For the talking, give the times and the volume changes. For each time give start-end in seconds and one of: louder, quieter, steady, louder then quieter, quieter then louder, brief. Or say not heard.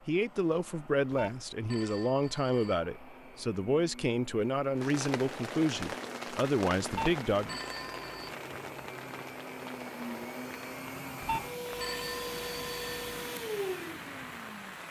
0.1-7.6 steady.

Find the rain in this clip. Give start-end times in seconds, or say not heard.
4.8-14.8.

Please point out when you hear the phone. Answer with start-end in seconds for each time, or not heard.
1.1-2.8, 6.9-8.3, 11.2-13.1.